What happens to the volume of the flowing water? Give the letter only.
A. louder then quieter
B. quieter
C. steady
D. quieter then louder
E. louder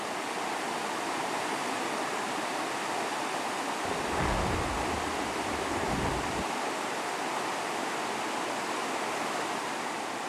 C.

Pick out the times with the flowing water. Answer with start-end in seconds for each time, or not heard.
0.0-10.2.